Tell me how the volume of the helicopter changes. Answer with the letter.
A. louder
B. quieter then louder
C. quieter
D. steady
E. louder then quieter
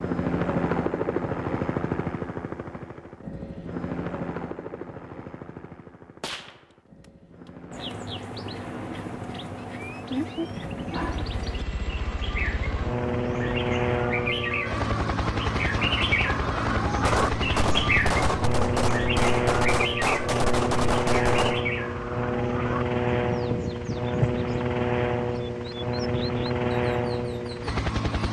B.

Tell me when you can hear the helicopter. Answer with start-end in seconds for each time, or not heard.
0.0-28.2.